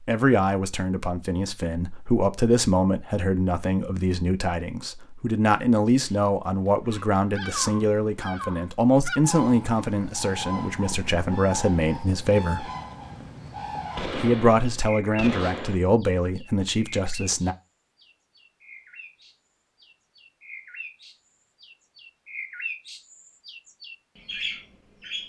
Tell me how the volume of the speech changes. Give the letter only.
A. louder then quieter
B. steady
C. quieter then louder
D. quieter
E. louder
B.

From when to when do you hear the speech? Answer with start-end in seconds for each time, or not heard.
0.0-12.7, 14.2-17.6.